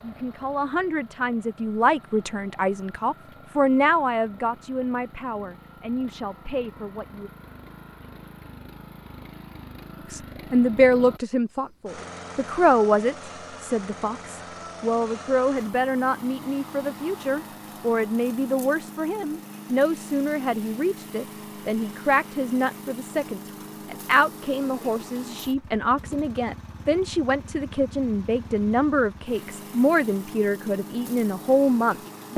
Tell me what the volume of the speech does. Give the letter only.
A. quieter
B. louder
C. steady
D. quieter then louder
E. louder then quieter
C.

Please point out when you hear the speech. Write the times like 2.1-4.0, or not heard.
0.0-7.3, 10.1-32.3.